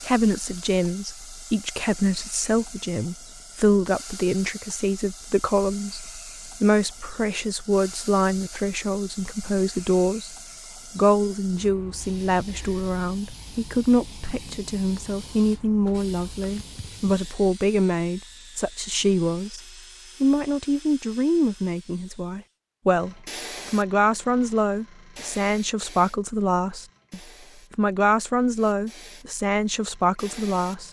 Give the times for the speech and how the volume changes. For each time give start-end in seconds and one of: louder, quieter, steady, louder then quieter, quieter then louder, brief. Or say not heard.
0.0-10.3 steady
10.9-19.6 steady
20.2-30.8 steady.